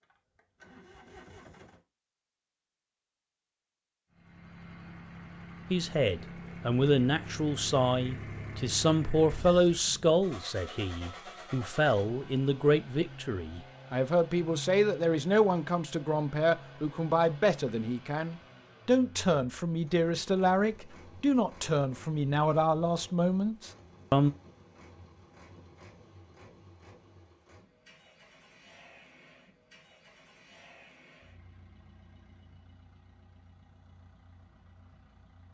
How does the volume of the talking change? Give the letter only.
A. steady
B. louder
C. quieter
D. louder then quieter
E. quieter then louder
A.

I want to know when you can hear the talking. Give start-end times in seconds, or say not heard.
5.7-24.3.